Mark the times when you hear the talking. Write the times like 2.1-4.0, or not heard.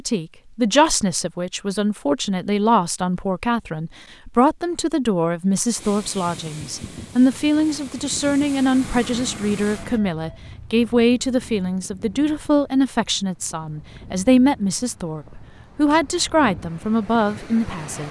0.0-18.0.